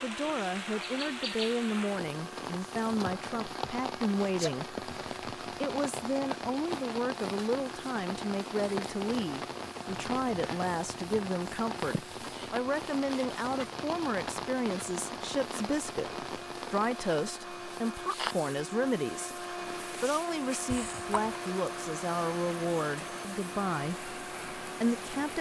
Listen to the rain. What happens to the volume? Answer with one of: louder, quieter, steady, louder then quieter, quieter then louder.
quieter.